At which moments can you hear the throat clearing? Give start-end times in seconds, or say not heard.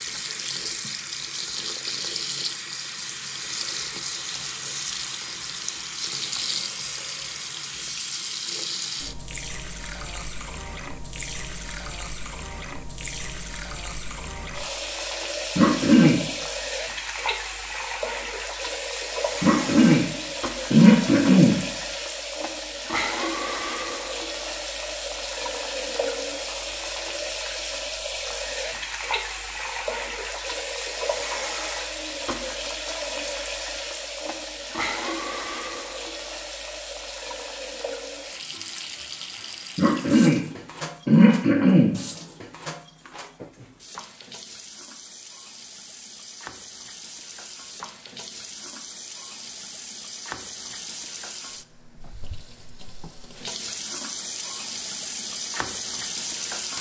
15.6-16.2, 19.4-20.1, 20.7-21.6, 39.8-40.4, 41.0-42.0.